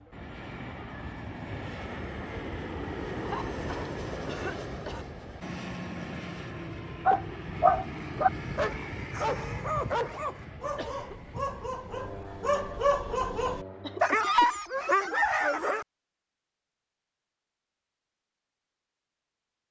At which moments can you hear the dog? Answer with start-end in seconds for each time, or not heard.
7.0-15.8.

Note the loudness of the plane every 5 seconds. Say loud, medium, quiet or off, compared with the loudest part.
loud, loud, medium, off.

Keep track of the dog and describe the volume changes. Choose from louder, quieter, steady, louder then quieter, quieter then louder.
quieter then louder.